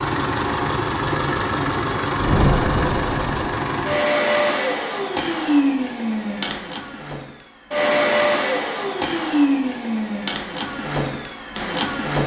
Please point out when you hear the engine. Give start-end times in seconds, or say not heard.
0.0-12.2.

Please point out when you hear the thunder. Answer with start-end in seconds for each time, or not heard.
2.1-3.5.